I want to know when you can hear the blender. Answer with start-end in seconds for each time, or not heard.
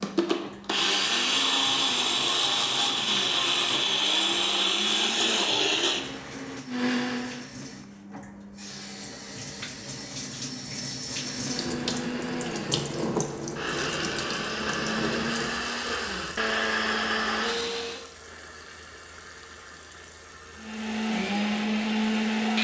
0.0-7.5, 11.2-18.1, 20.6-22.5.